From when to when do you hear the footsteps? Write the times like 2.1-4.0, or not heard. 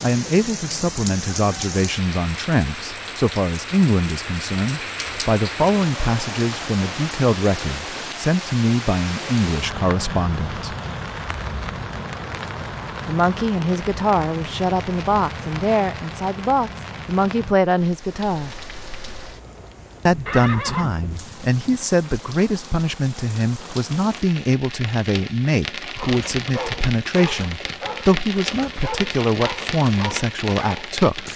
not heard.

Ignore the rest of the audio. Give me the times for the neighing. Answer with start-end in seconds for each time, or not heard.
20.2-21.8.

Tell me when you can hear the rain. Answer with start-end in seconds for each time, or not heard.
0.0-31.3.